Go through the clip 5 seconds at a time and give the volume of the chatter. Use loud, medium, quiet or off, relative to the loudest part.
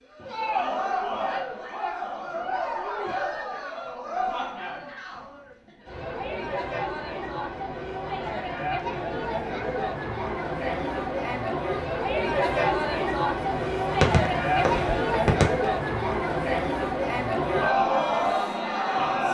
medium, medium, loud, loud.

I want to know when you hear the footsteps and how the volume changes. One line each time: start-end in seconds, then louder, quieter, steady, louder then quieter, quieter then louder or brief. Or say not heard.
not heard.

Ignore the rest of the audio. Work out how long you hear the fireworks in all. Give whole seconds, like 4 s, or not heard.
2 s.